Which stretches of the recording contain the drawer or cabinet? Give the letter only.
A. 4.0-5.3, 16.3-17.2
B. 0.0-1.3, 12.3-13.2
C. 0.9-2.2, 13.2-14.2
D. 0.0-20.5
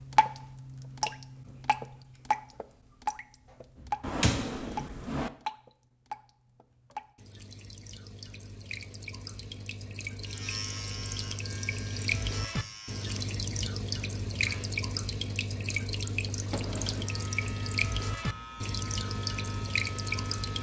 A.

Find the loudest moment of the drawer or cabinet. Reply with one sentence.
The loudest moment of the drawer or cabinet is at 4 seconds.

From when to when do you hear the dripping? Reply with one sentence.
You can hear the dripping from 0.0 to 20.5 s.